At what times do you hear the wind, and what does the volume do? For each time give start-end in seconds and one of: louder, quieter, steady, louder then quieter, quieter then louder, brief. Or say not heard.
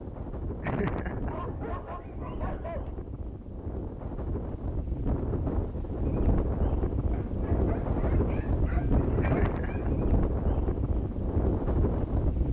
0.0-12.4 louder.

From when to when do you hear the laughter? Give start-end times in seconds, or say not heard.
0.6-1.4, 9.2-9.9.